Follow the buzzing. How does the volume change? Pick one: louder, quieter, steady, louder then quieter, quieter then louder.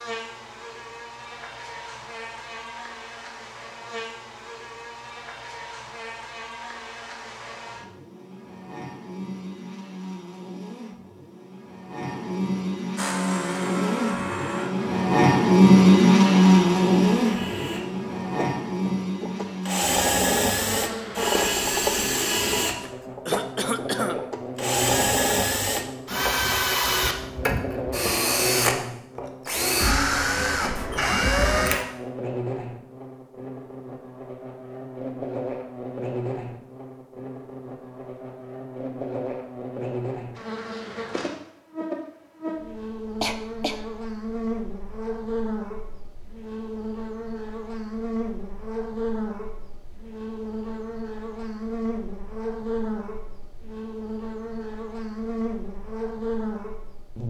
louder then quieter.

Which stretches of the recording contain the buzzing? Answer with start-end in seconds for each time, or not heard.
0.0-57.2.